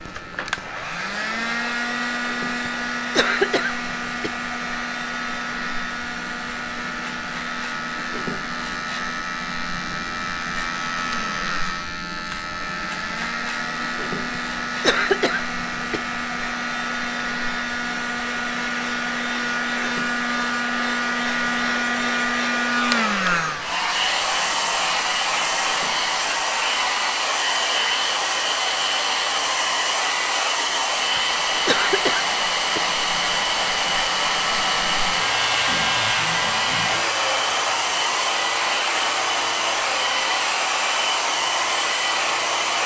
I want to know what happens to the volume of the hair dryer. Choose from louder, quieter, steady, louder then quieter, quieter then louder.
louder.